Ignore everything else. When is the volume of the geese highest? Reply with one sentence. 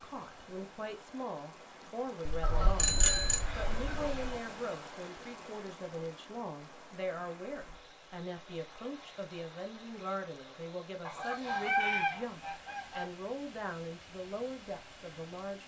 The loudest moment of the geese is at 12 seconds.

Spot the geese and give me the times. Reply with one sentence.
The geese can be heard from 2.4 to 4.3 s and from 11.1 to 13.1 s.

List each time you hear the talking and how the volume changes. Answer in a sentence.
The talking can be heard from 0.0 to 15.6 s, at a steady volume.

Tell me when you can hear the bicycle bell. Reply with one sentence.
The bicycle bell can be heard from 2.2 to 3.4 s.